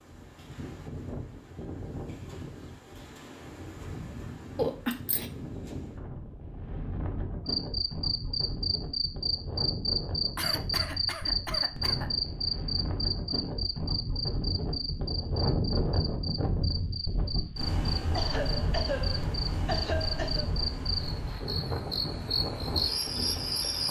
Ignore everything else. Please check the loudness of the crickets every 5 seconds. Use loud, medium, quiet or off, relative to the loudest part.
off, loud, loud, medium, loud.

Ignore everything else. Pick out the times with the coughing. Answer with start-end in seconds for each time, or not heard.
4.5-5.2, 10.3-12.3, 18.1-20.4.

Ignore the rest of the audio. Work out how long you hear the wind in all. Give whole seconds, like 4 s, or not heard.
24 s.